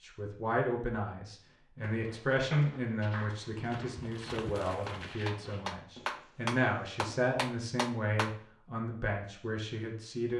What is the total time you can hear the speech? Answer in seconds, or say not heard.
10 s.